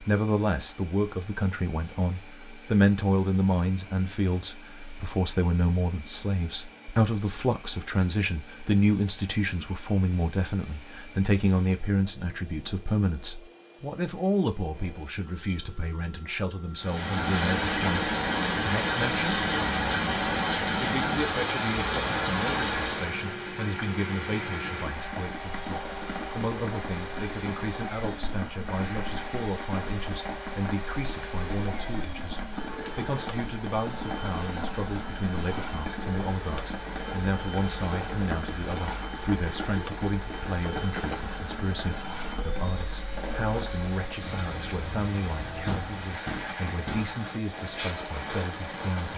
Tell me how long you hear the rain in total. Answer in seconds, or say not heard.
32 s.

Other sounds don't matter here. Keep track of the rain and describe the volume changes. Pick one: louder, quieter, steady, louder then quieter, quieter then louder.
quieter.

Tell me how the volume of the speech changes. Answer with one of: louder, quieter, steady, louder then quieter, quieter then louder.
quieter.